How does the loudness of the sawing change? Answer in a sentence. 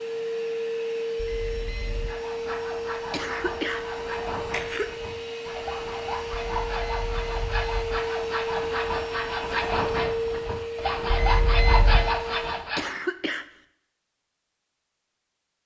The volume of the sawing goes up.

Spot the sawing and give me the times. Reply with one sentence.
The sawing can be heard from 2.0 to 12.9 s.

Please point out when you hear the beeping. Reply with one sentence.
The beeping can be heard from 1.1 to 2.2 s, from 6.3 to 8.0 s and from 11.1 to 12.2 s.